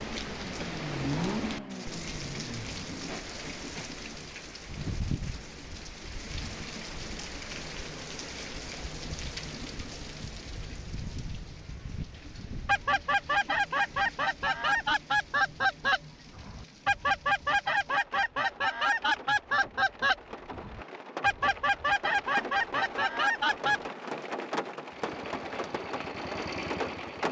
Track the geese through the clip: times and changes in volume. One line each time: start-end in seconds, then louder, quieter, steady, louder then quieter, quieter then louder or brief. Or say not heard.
12.7-23.9 steady.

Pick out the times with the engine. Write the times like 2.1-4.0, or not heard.
0.0-3.1, 24.9-27.2.